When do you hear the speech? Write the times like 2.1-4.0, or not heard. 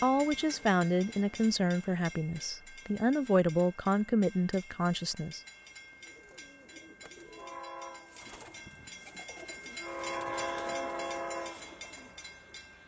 0.0-5.4.